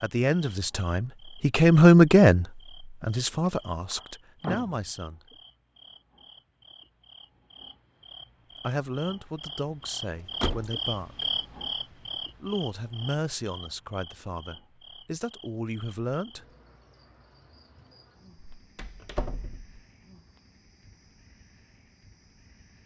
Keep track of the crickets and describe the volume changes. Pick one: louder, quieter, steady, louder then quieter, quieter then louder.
louder then quieter.